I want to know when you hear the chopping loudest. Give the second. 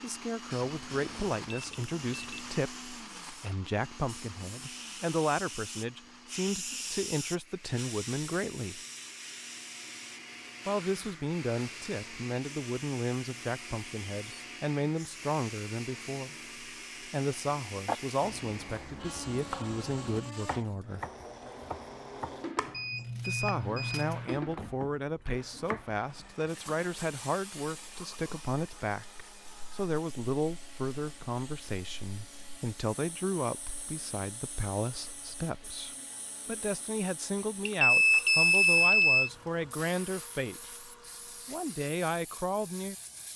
18 s.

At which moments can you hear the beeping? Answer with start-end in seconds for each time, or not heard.
0.7-2.6, 22.7-24.4, 37.6-39.3.